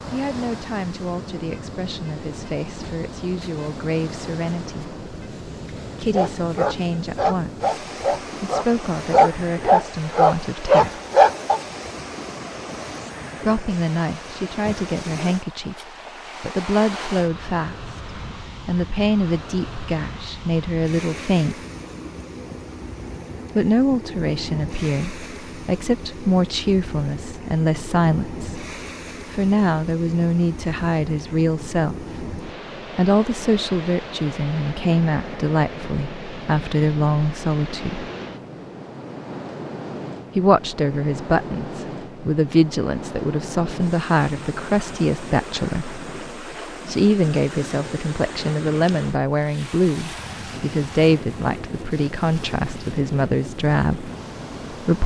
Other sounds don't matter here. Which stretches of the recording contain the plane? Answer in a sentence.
You can't hear the plane here.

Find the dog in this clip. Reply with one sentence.
You can hear the dog from 6.1 to 11.6 s.